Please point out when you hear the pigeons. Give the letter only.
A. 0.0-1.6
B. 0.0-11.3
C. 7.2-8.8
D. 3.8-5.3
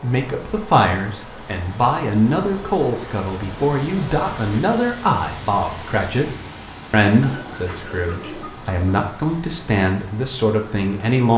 C.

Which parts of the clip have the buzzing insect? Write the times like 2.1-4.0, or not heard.
not heard.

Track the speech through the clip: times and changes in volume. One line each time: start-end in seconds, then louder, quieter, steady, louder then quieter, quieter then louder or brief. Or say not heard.
0.0-11.3 steady.